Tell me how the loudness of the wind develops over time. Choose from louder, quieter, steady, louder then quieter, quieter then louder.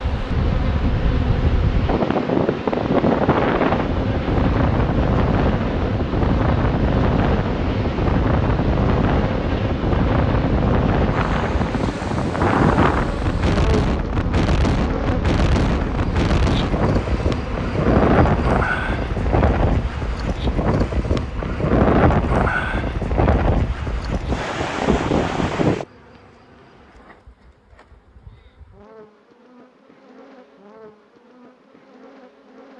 steady.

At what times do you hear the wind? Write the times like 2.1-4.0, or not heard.
0.0-25.9.